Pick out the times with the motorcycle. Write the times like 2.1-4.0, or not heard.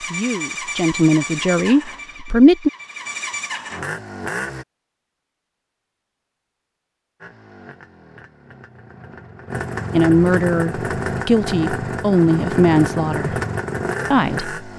0.0-4.7, 7.2-14.7.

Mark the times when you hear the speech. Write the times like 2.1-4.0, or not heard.
0.1-2.7, 9.9-13.4, 14.1-14.6.